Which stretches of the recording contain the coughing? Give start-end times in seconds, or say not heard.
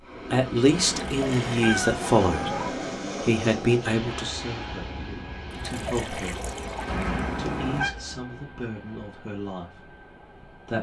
not heard.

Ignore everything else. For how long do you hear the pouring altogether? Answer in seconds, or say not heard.
3 s.